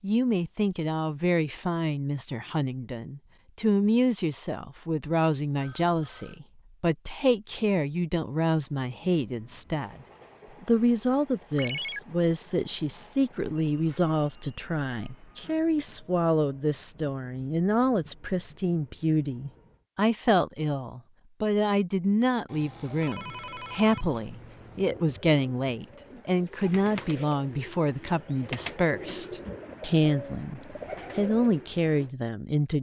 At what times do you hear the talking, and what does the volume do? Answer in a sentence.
The talking can be heard from 0.0 to 10.0 s, at a steady volume; and from 10.6 to 32.7 s, at a steady volume.